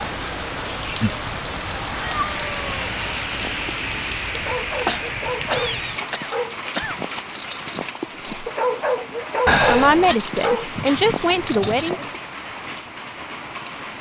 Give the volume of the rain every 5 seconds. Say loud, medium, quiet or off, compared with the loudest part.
loud, medium, medium.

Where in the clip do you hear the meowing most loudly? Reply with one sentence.
The loudest moment of the meowing is at 10 seconds.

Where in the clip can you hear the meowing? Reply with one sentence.
You can hear the meowing from 2.0 to 2.9 s, from 4.8 to 6.0 s and from 9.4 to 10.2 s.